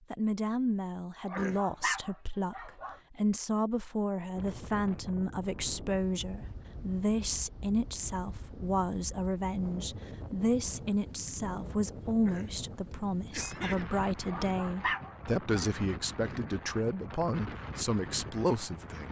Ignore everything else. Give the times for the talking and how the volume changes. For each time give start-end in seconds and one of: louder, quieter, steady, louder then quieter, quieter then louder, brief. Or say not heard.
0.1-19.0 steady.